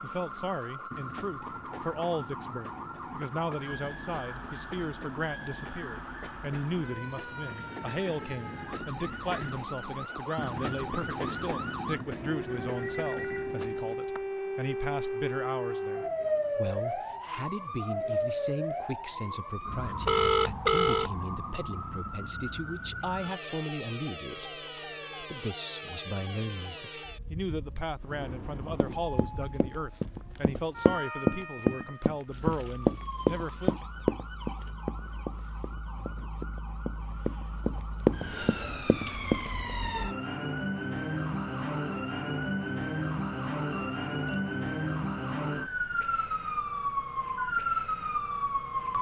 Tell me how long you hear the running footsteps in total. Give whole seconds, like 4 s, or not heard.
11 s.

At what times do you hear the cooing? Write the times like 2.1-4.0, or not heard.
not heard.